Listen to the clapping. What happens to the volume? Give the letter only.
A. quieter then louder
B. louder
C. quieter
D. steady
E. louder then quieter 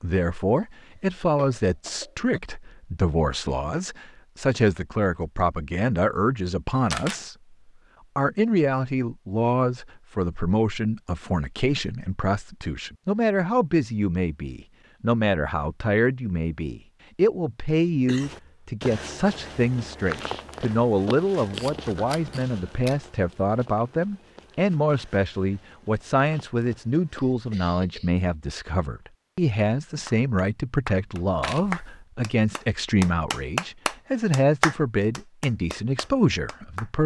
E.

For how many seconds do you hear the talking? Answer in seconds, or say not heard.
36 s.